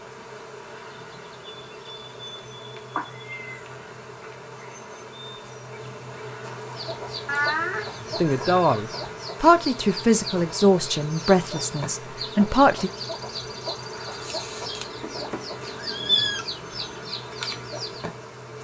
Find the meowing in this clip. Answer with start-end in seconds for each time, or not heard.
3.0-3.6, 7.2-8.8, 14.1-16.4.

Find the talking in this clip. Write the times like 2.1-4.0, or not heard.
8.2-12.9.